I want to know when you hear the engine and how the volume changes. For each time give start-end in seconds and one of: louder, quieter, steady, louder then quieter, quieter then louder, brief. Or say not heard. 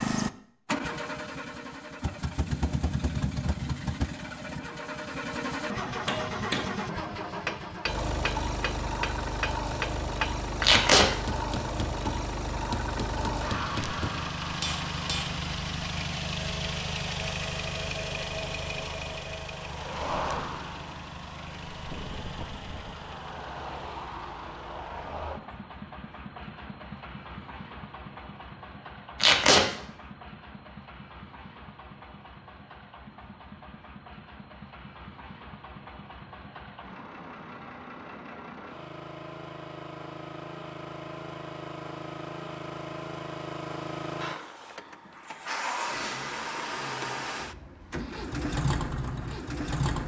0.0-50.0 quieter then louder.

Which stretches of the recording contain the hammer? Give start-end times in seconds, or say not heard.
5.8-15.4.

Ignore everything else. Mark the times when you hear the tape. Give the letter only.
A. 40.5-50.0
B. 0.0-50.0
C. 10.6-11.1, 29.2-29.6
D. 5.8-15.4
C.